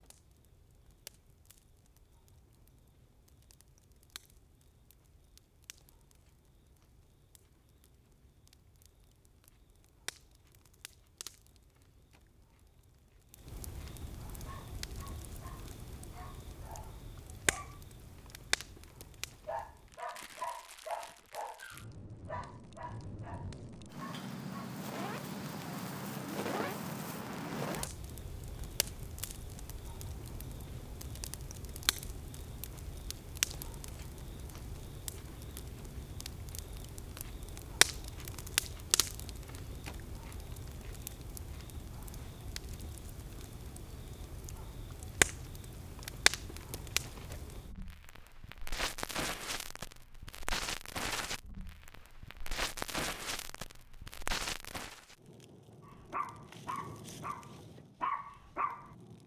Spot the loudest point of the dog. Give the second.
58 s.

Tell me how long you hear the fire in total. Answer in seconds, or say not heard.
59 s.